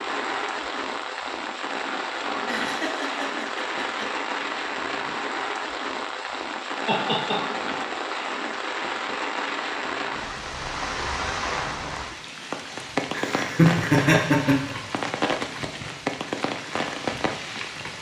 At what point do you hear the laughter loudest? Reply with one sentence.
The volume of the laughter peaks at 14 seconds.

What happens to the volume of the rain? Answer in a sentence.
The volume of the rain stays about the same.